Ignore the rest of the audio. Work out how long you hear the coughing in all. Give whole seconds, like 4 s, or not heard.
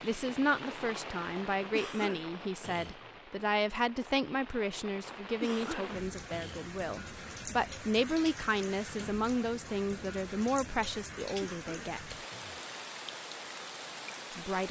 4 s.